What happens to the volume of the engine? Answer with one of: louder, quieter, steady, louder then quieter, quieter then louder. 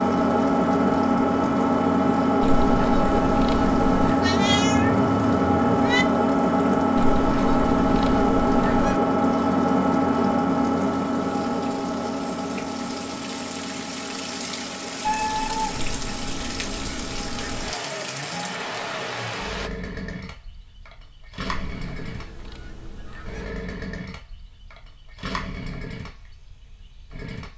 quieter.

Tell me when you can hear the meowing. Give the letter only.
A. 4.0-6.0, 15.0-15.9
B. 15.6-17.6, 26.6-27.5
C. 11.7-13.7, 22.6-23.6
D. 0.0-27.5
A.